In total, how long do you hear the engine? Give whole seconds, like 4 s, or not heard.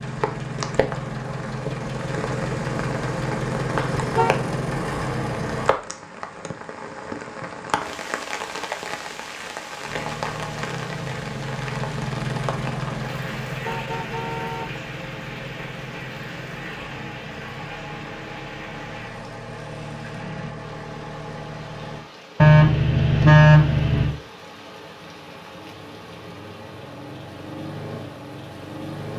18 s.